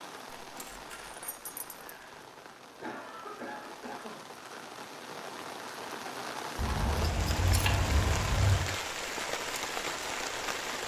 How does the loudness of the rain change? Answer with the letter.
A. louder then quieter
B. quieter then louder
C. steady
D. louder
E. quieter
D.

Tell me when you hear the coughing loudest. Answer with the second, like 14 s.
3 s.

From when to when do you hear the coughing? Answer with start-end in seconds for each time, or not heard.
1.8-4.2.